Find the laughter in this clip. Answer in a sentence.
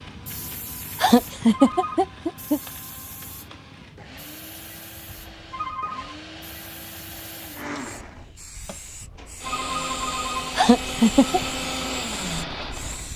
You can hear the laughter from 1.0 to 2.6 s and from 10.6 to 11.4 s.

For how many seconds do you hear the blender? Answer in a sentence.
You can hear the blender for 13 seconds altogether.